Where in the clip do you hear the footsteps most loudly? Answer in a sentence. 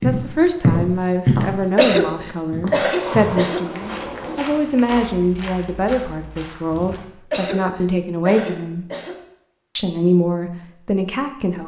The loudest moment of the footsteps is at 1 second.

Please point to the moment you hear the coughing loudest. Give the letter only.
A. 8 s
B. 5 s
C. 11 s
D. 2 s
D.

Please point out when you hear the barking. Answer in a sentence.
The barking can't be heard in this clip.